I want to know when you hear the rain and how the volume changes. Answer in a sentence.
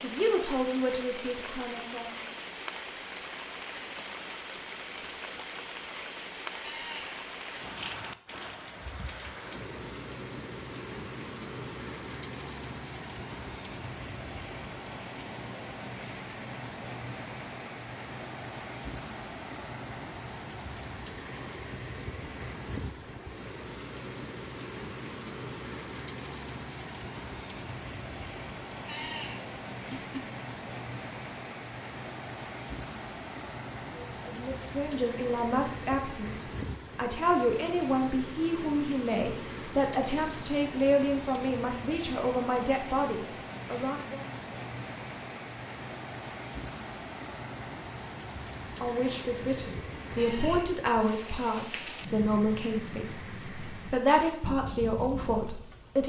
The rain can be heard from 0.0 to 56.0 s, at a steady volume.